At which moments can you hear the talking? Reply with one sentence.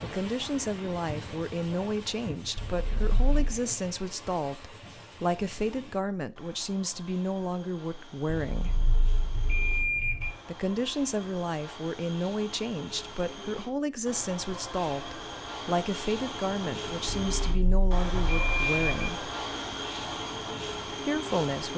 The talking can be heard from 0.0 to 8.8 s, from 10.4 to 19.3 s and from 21.1 to 21.7 s.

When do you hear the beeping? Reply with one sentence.
The beeping can be heard from 2.5 to 3.5 s, from 8.5 to 10.3 s and from 17.1 to 19.1 s.